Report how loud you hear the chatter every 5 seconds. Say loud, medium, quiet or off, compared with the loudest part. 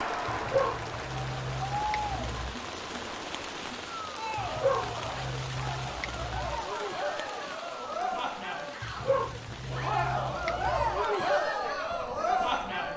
medium, medium, loud.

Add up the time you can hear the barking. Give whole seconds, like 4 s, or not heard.
7 s.